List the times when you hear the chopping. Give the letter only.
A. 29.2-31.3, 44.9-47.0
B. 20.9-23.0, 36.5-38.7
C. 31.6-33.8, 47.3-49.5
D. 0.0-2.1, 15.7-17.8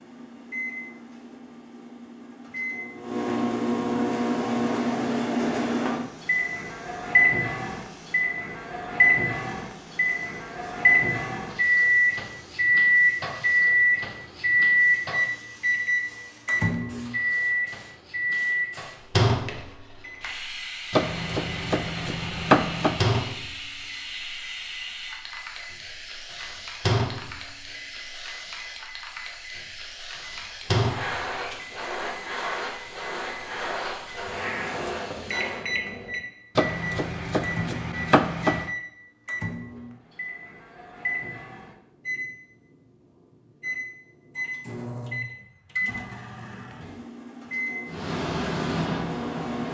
B.